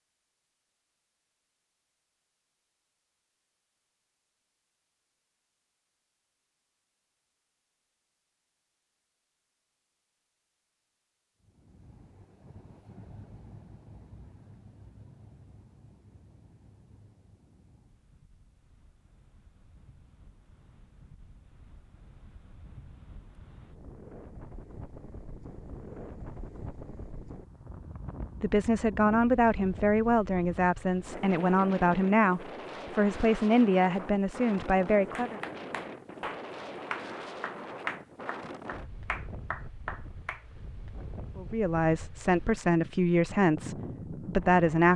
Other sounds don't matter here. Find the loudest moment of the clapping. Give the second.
38 s.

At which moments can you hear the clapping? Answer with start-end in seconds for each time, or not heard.
35.1-40.5.